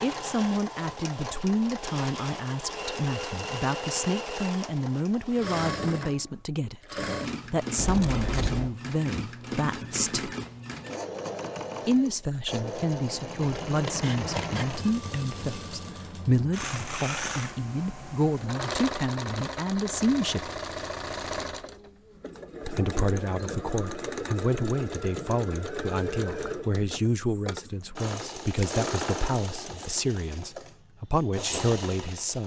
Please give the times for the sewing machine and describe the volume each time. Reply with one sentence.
You can hear the sewing machine from 0.0 to 32.4 s, at a steady volume.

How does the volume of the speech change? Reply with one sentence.
The loudness of the speech stays about the same.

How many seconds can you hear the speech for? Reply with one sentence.
The speech can be heard for 29 seconds in total.